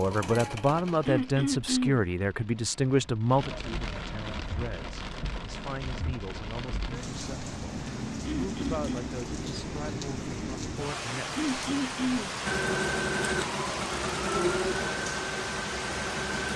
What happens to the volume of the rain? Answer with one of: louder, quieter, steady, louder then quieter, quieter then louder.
louder.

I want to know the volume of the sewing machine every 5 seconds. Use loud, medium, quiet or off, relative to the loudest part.
medium, off, loud, medium.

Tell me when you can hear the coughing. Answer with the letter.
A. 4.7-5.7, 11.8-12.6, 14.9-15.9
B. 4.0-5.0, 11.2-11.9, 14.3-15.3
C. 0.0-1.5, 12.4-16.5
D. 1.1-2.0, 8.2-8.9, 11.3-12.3
D.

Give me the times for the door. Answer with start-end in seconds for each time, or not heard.
not heard.